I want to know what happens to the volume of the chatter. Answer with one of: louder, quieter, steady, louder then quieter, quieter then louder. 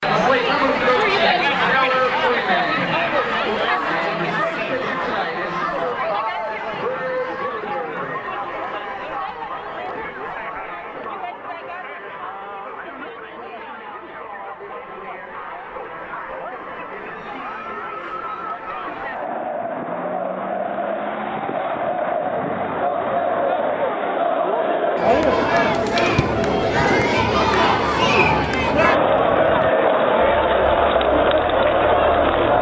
quieter then louder.